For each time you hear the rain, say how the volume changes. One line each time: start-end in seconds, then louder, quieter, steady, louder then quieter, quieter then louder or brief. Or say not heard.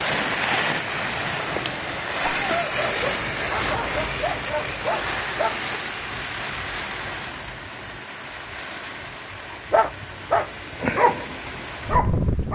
0.0-12.5 quieter.